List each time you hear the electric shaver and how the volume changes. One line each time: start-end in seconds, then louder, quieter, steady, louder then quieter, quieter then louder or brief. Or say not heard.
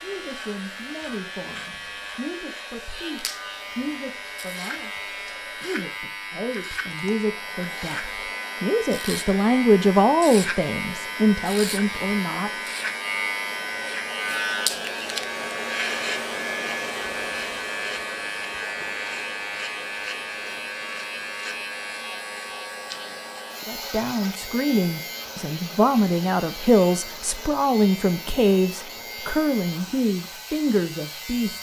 0.0-31.5 louder then quieter.